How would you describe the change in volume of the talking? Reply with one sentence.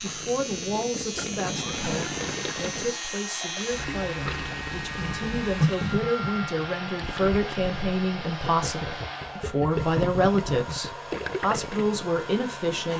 The volume of the talking goes up.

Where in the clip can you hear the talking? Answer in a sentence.
The talking can be heard from 0.0 to 12.9 s.